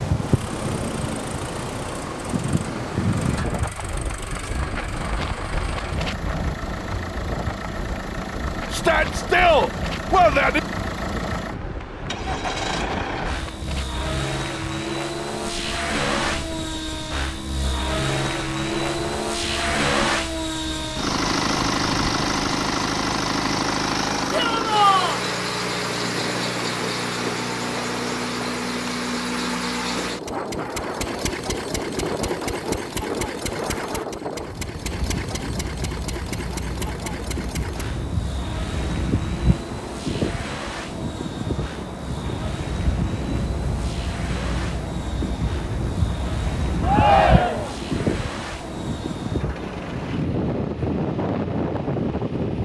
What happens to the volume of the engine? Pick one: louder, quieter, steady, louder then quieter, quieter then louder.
louder then quieter.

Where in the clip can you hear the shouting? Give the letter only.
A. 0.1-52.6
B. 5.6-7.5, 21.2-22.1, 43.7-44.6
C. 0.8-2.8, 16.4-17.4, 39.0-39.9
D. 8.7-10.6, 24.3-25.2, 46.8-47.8
D.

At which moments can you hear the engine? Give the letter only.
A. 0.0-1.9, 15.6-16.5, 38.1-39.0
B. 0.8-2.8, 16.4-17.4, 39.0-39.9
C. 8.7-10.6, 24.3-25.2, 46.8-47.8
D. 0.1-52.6
D.